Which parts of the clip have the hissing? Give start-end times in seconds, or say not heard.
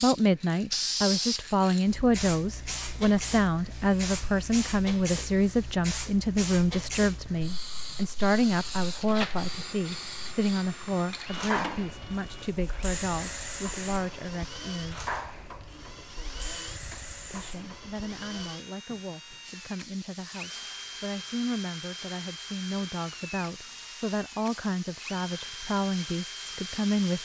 0.0-27.2.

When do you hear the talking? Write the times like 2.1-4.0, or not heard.
0.0-15.1, 17.3-27.2.